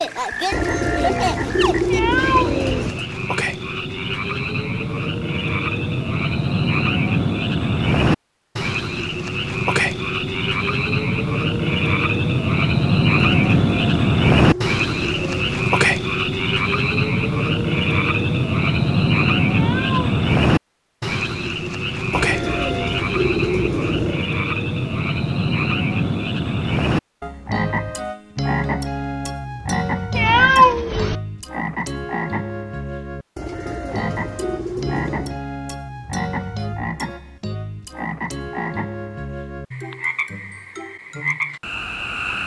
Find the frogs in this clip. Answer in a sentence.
The frogs can be heard from 0.0 to 42.4 s.